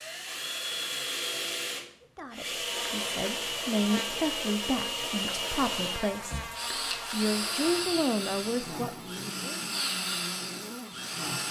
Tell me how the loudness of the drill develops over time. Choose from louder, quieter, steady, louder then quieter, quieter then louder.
steady.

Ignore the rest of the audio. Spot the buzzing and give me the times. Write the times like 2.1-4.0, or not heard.
2.5-11.4.